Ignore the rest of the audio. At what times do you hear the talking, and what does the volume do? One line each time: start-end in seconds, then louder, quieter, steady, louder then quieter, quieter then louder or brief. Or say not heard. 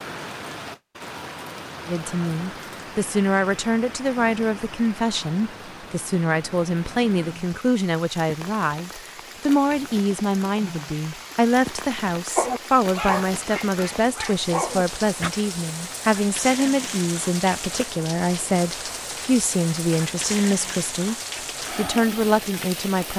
1.9-21.1 steady
21.8-23.1 brief.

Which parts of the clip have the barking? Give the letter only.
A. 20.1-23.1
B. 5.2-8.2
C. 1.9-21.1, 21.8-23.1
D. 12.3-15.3
D.